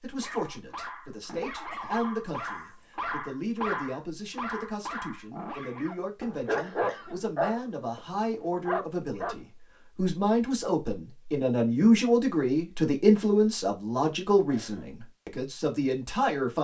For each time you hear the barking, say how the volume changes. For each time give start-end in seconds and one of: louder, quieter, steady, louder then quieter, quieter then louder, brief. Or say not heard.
0.2-9.4 louder.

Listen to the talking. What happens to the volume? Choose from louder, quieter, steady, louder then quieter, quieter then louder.
louder.